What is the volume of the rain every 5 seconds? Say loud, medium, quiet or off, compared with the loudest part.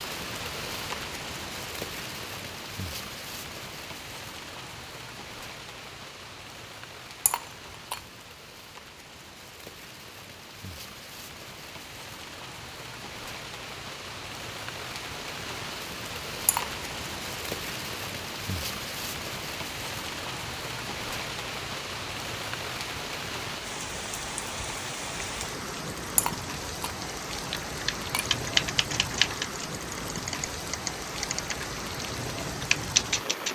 loud, medium, medium, loud, loud, loud, loud.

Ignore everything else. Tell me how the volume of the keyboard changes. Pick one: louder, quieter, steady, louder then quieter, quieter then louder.
quieter then louder.